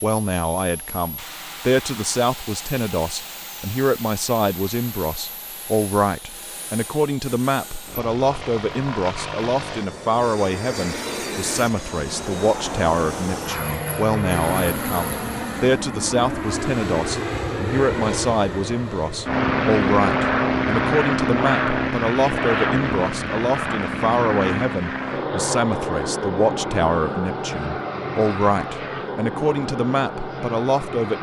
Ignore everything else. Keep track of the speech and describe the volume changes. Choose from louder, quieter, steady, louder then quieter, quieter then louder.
steady.